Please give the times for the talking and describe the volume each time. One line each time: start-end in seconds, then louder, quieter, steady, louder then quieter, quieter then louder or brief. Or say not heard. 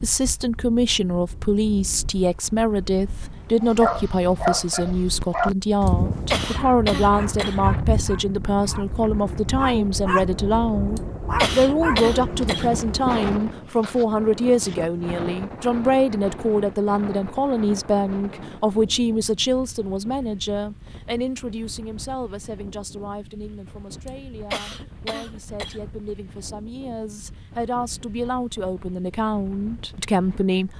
0.0-30.7 quieter.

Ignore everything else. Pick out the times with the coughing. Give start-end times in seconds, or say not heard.
5.8-7.6, 10.9-12.7, 24.1-25.8.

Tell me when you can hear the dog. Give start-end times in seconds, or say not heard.
3.6-13.3.